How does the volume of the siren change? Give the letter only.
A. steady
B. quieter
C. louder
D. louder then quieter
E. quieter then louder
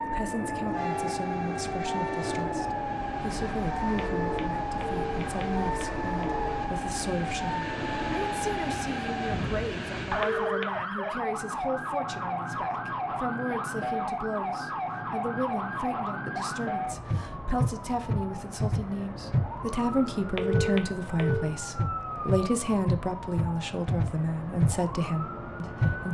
A.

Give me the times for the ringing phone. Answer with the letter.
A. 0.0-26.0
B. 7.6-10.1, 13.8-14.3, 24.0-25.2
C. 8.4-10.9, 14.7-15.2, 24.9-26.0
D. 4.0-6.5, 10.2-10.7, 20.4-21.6
D.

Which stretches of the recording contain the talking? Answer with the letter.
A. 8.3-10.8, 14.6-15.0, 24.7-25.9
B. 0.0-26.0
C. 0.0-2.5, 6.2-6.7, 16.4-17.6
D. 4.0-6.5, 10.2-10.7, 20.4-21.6
B.